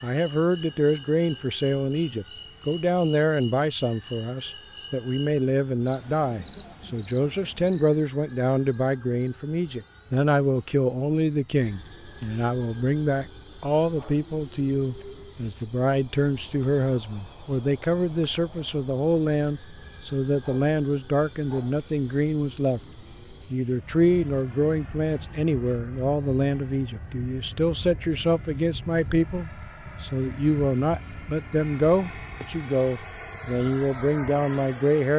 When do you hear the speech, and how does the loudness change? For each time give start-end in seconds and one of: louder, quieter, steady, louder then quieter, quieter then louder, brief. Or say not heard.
0.0-22.8 steady
23.5-35.1 steady.